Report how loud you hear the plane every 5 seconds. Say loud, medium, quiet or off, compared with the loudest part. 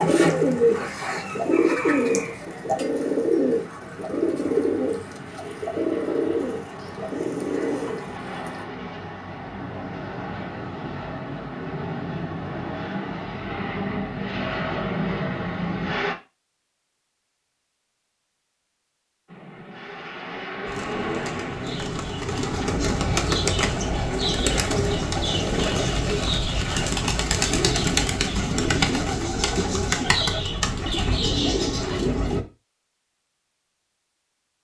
quiet, medium, loud, loud, loud, off, off.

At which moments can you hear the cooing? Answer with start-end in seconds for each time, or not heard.
0.0-8.7, 20.6-32.5.